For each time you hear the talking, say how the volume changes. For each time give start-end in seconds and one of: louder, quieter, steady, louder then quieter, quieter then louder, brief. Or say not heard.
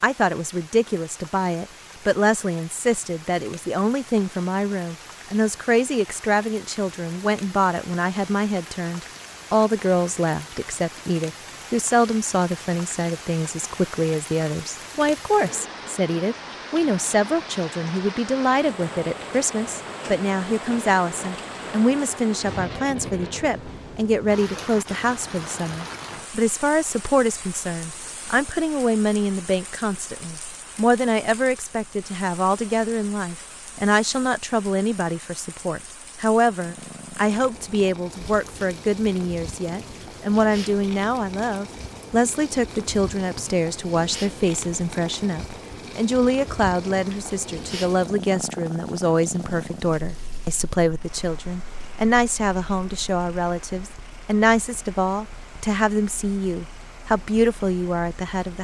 0.0-58.6 steady.